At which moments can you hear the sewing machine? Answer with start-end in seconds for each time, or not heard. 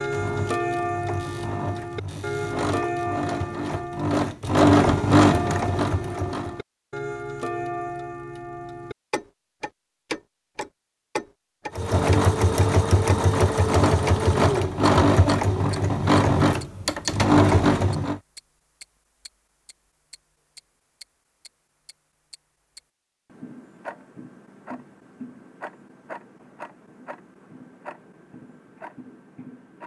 0.0-6.6, 11.8-18.2.